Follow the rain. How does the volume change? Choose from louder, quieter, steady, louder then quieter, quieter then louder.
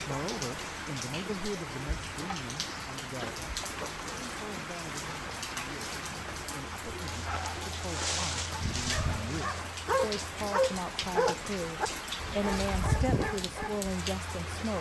steady.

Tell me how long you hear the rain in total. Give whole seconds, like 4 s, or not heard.
15 s.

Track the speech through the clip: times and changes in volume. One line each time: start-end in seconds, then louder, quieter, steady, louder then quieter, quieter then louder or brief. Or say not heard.
0.0-14.7 quieter then louder.